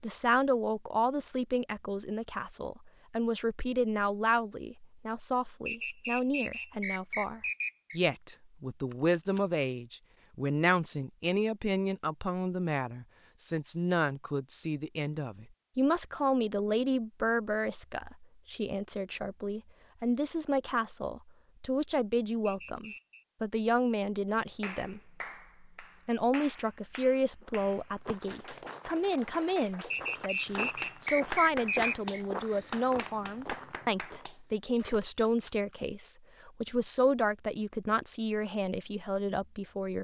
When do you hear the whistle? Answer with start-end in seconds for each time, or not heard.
5.7-8.0, 22.4-23.2, 29.9-32.2.